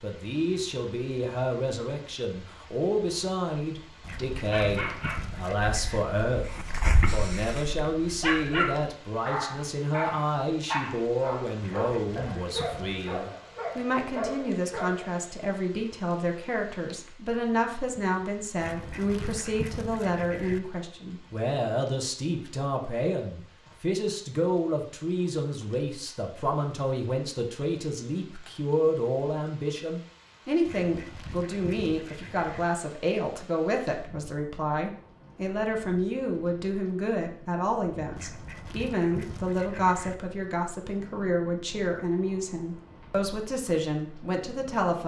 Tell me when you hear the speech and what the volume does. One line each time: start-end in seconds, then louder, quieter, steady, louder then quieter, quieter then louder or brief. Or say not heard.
0.0-45.0 steady.